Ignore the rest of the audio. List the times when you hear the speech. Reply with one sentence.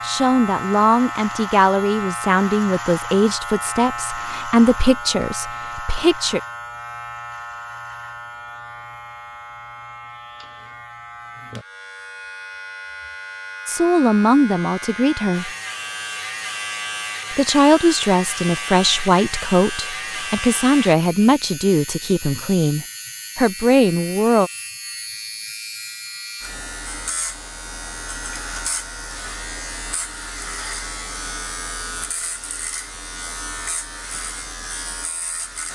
The speech can be heard from 0.0 to 6.4 s, from 13.7 to 15.5 s and from 17.3 to 24.5 s.